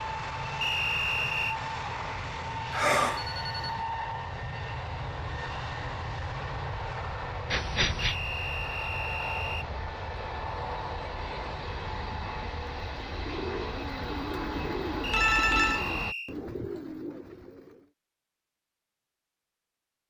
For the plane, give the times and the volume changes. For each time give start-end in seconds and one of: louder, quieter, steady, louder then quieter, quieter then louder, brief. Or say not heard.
0.0-16.1 steady.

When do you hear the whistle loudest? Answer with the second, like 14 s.
1 s.